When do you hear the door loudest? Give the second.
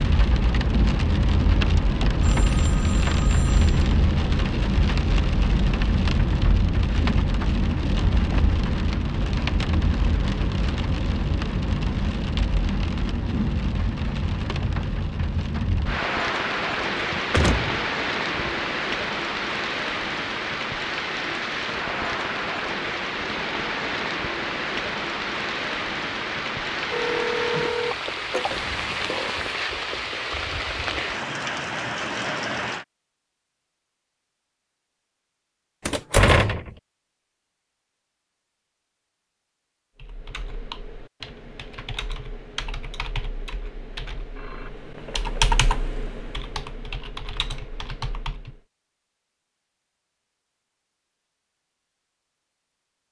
36 s.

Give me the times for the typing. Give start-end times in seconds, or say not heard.
40.0-48.6.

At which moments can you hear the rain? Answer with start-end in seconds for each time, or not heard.
0.0-32.9.